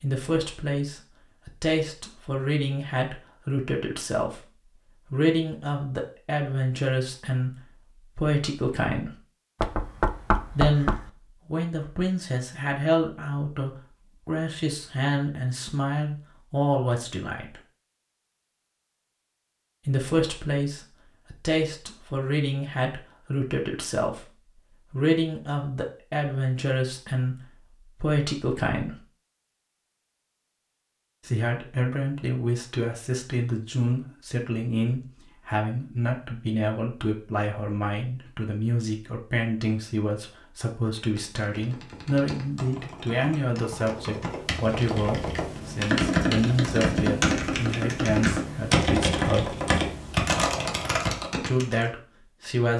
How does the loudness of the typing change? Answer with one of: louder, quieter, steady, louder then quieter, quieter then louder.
louder.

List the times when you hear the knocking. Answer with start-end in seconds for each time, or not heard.
9.6-11.1.